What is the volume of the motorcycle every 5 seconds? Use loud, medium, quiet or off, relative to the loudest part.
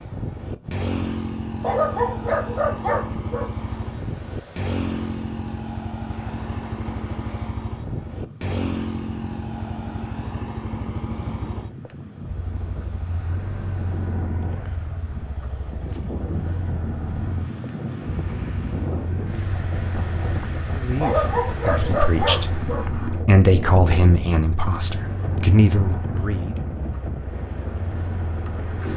loud, loud, medium, medium, medium, medium.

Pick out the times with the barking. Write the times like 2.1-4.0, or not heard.
1.6-3.5, 21.0-22.9.